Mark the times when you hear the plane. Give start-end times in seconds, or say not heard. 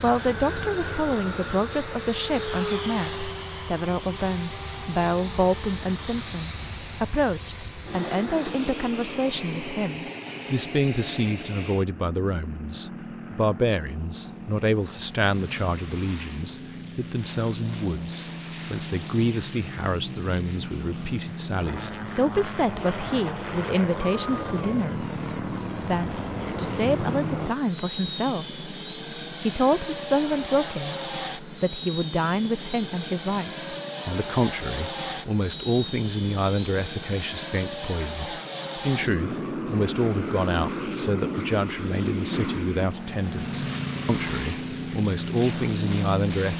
0.0-46.5.